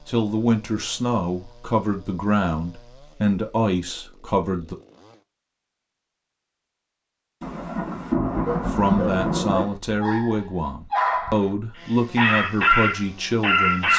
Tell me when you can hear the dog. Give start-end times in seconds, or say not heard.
8.4-11.5, 12.2-13.9.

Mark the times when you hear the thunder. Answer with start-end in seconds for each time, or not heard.
7.4-9.7.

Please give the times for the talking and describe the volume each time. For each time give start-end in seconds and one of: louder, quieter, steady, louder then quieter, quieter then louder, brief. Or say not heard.
0.1-4.8 steady
8.7-13.9 steady.